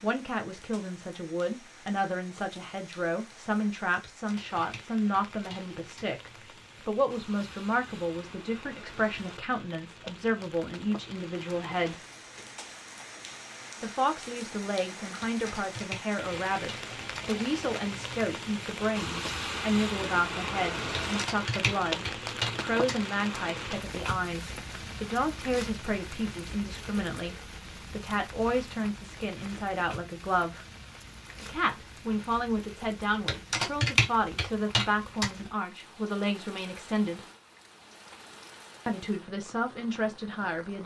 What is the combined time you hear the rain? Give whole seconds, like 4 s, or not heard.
41 s.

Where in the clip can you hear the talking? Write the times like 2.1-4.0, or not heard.
0.0-12.0, 13.8-30.6, 31.4-37.2, 38.9-40.8.